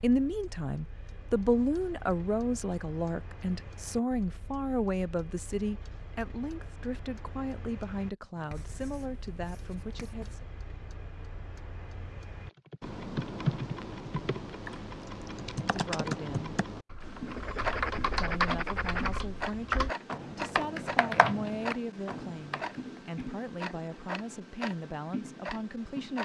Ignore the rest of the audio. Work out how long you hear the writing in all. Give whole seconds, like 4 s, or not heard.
4 s.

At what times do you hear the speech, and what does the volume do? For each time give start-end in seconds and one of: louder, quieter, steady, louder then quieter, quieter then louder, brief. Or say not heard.
0.0-10.4 quieter
15.6-16.6 brief
18.1-26.1 steady.